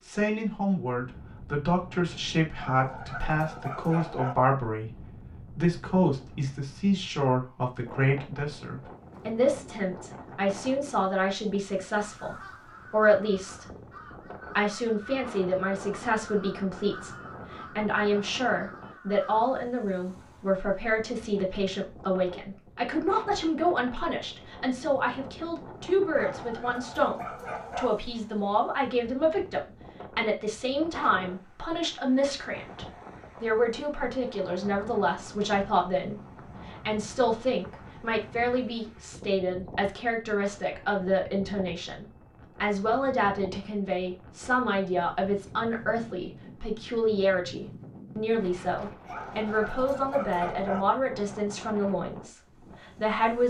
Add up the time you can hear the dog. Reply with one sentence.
You can hear the dog for 5 seconds altogether.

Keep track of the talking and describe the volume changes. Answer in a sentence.
The volume of the talking stays about the same.